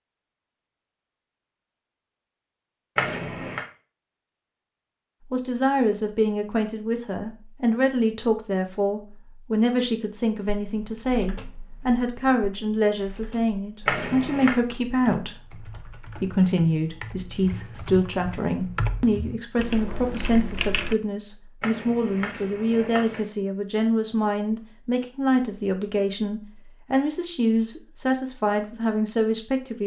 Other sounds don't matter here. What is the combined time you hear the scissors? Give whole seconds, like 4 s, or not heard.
3 s.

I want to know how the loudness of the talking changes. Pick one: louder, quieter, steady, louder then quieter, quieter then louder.
steady.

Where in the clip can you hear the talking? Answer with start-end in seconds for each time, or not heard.
5.3-29.8.